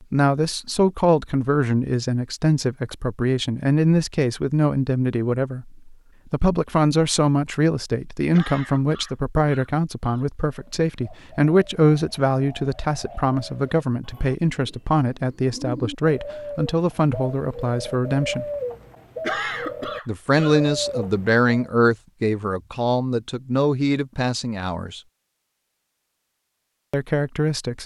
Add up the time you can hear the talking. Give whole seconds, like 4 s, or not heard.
24 s.